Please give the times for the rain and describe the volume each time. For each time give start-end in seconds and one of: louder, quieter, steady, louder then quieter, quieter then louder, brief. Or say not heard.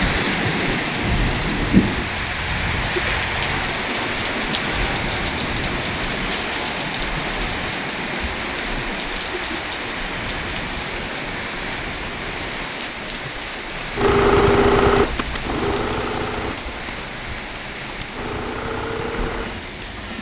0.0-20.1 quieter.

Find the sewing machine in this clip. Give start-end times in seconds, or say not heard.
13.9-20.1.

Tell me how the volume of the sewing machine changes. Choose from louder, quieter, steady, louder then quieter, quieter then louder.
quieter then louder.